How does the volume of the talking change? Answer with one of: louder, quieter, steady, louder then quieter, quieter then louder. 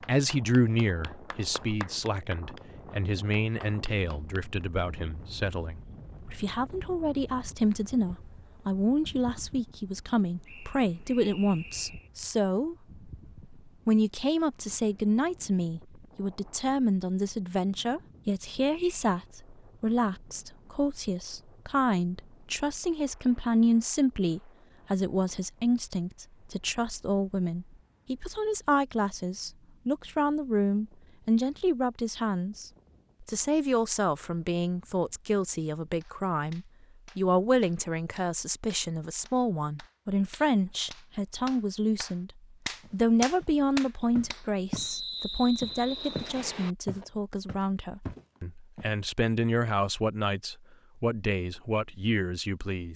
steady.